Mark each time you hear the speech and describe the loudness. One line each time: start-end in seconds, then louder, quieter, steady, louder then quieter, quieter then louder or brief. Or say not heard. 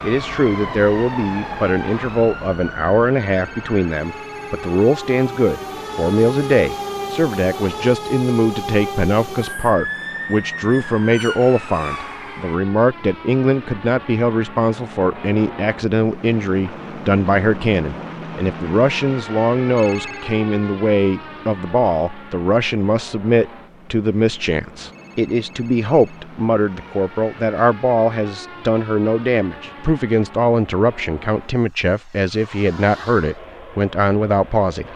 0.0-34.9 steady.